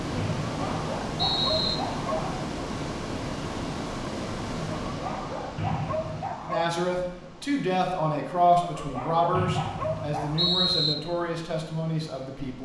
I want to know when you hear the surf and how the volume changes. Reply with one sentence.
The surf can be heard from 0.0 to 12.5 s, getting quieter.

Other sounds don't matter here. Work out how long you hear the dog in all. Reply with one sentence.
The dog can be heard for 6 seconds in total.